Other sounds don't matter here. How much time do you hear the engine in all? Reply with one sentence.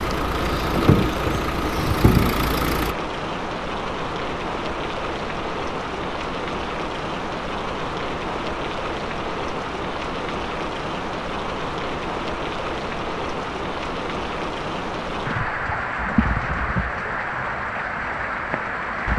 You can hear the engine for 3 seconds altogether.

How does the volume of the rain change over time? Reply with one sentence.
The loudness of the rain stays about the same.